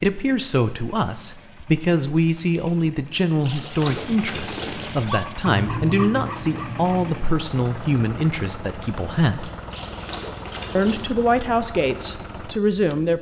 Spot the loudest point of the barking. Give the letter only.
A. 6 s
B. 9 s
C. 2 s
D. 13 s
A.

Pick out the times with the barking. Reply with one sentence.
You can hear the barking from 5.0 to 7.2 s.